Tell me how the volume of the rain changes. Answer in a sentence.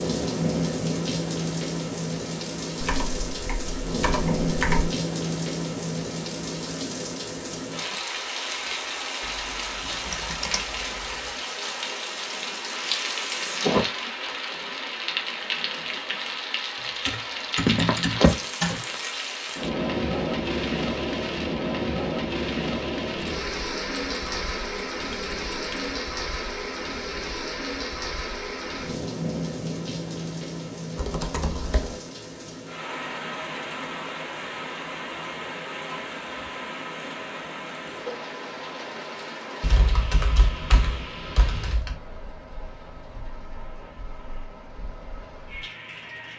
The loudness of the rain goes down.